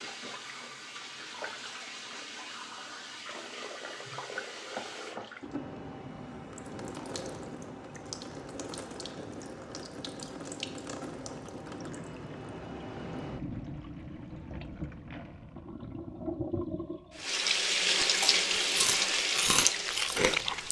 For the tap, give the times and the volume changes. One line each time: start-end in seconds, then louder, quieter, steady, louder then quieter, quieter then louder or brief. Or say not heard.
0.0-20.6 louder.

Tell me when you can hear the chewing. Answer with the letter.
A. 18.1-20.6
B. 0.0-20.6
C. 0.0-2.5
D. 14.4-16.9
A.